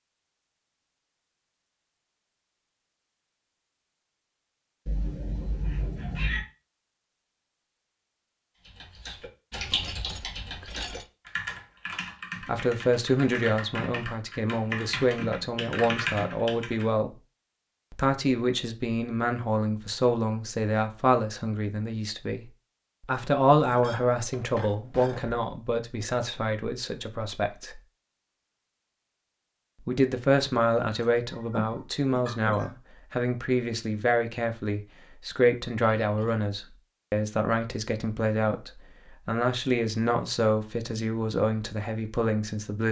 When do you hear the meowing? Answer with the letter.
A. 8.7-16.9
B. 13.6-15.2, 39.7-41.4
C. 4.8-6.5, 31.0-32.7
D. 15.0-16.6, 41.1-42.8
C.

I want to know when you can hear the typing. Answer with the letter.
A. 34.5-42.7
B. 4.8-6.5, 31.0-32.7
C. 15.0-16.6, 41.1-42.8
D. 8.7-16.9
D.